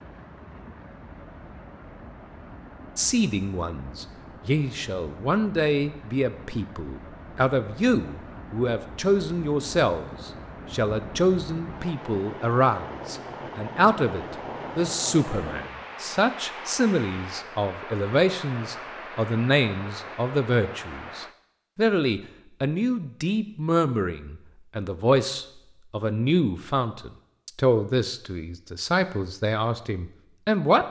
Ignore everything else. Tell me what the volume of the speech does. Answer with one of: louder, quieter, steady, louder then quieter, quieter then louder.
steady.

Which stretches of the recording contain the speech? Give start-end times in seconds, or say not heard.
3.0-30.8.